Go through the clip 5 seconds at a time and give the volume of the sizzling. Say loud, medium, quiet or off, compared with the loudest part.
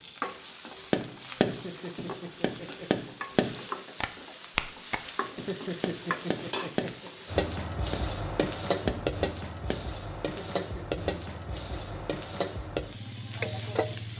medium, loud, loud.